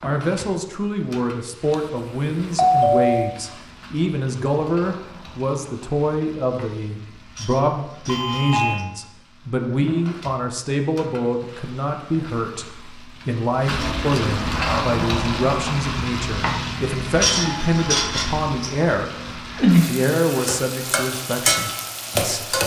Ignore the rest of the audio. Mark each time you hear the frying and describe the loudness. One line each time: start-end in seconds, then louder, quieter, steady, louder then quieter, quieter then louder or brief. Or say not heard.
0.0-22.6 louder.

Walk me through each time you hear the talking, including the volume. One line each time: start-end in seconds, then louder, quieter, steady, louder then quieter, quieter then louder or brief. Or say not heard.
0.0-19.1 steady
19.9-22.6 brief.